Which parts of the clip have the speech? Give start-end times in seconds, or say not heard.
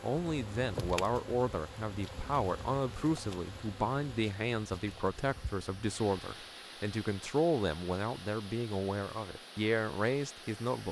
0.0-10.8.